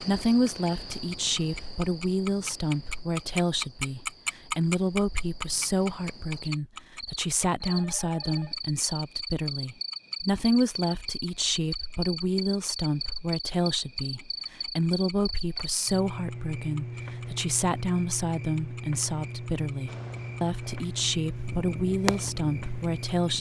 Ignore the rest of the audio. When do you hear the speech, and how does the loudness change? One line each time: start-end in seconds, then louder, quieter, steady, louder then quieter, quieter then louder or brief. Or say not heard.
0.0-23.3 steady.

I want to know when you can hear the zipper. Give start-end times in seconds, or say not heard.
not heard.